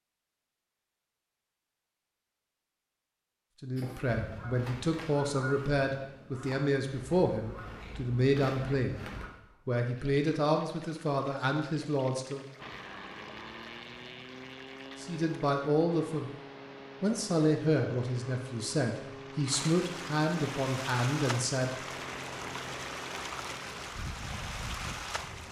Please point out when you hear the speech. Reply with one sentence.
You can hear the speech from 3.6 to 9.0 s, from 9.7 to 12.4 s, from 15.0 to 16.3 s and from 17.0 to 21.8 s.